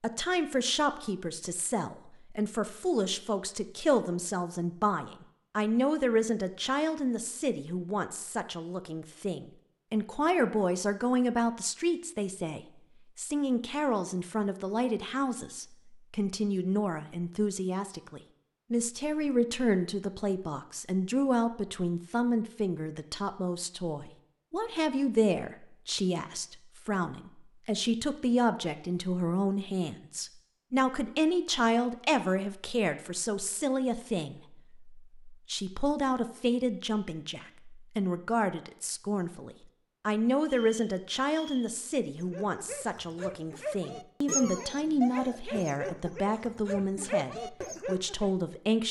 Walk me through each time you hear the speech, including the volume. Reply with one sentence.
You can hear the speech from 0.0 to 48.8 s, at a steady volume.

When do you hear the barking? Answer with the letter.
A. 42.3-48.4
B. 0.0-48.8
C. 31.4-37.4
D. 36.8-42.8
A.